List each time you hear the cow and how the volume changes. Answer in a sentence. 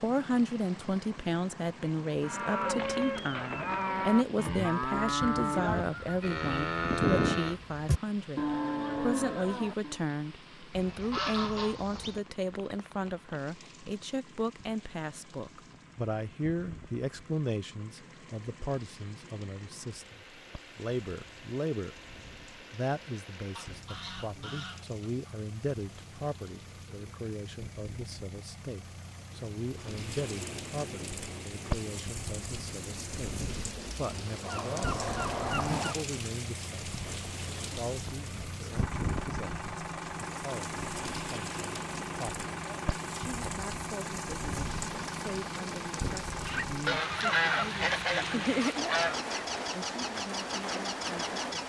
The cow can be heard from 2.2 to 10.0 s, at a steady volume.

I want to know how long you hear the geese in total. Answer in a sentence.
You can hear the geese for 9 seconds altogether.